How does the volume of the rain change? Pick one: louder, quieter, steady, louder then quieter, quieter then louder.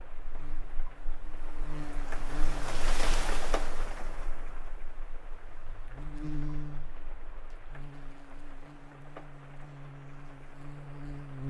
louder then quieter.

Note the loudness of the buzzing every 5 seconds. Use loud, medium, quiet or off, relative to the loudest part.
medium, medium, loud.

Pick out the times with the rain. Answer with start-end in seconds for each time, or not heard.
0.0-11.4.